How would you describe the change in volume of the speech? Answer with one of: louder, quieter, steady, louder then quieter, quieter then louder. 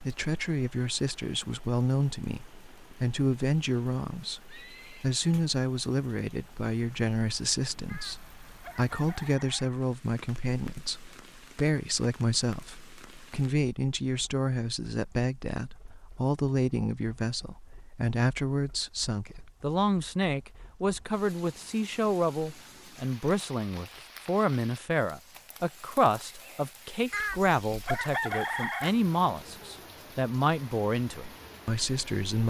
steady.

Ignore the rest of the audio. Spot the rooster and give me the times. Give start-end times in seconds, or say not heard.
7.8-9.7, 27.1-28.9.